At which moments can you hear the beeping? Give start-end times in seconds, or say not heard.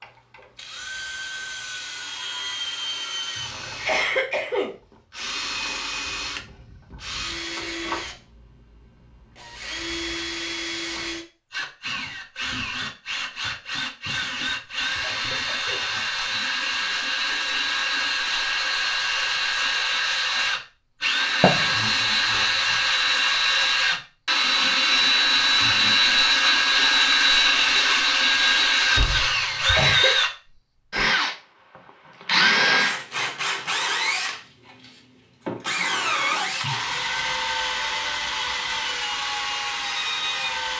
21.4-22.1.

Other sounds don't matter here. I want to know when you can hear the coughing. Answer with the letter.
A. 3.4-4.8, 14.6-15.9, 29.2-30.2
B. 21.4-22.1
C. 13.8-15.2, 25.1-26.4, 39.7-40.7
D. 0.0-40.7
A.